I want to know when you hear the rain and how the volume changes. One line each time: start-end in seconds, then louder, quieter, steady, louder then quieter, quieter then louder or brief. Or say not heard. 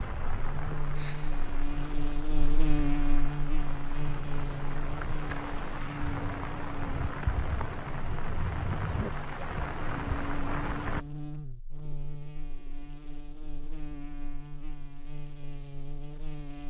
0.0-11.1 louder.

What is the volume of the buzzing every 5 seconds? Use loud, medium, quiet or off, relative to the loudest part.
loud, medium, medium, medium.